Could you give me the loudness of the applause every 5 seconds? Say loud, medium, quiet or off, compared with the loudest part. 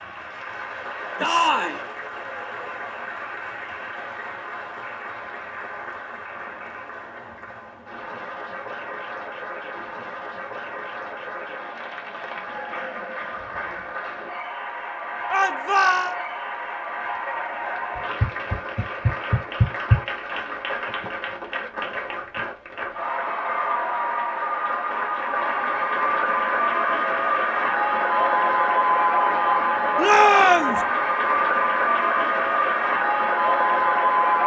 quiet, quiet, quiet, medium, medium, loud, loud.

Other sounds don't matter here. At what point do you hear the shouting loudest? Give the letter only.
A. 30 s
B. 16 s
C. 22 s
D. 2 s
A.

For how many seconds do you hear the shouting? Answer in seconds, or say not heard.
2 s.